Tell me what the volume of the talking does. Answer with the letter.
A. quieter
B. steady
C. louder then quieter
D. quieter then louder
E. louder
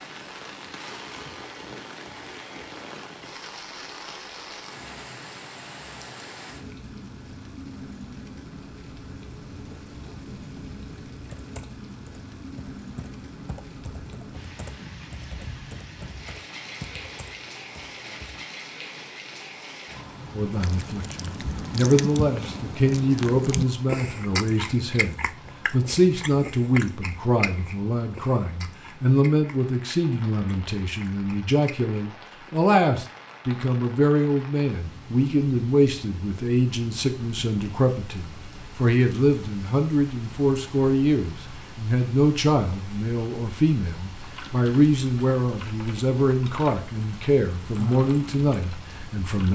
B.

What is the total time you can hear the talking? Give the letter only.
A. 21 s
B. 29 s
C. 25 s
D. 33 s
B.